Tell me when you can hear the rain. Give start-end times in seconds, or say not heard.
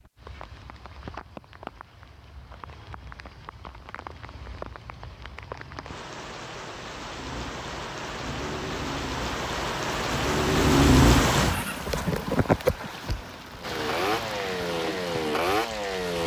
0.0-16.2.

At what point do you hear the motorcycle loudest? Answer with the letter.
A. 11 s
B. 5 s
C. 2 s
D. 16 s
A.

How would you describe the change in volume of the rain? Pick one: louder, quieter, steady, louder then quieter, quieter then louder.
louder then quieter.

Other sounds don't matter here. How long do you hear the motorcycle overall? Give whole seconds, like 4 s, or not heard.
7 s.